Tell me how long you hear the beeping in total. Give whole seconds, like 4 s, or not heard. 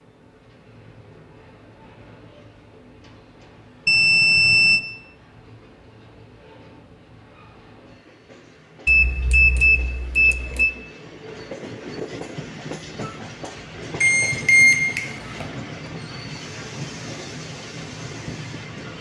4 s.